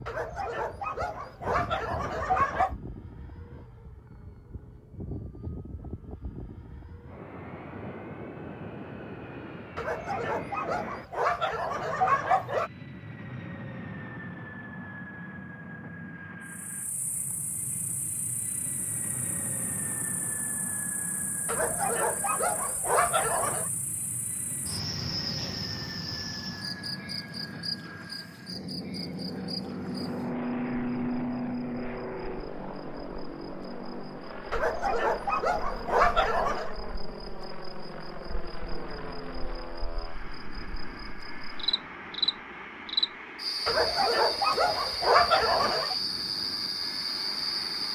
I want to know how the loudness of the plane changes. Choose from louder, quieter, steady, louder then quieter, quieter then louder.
louder then quieter.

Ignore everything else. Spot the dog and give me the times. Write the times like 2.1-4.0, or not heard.
0.1-2.8, 9.8-12.7, 21.4-23.7, 34.5-36.7, 43.6-46.0.